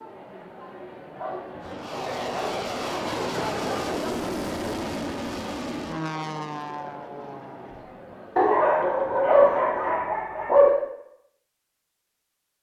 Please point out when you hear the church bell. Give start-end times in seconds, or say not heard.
not heard.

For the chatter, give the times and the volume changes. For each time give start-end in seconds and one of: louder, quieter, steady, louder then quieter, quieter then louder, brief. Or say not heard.
0.0-9.2 louder then quieter.